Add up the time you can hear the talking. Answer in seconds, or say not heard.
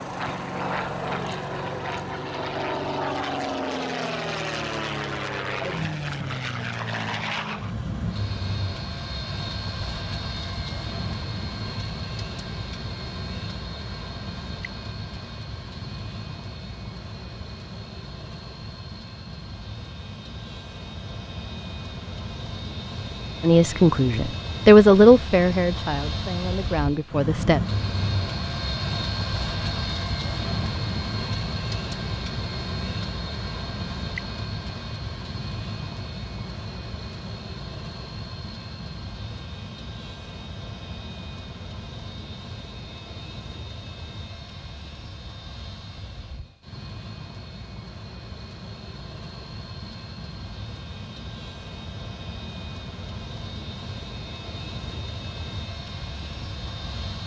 4 s.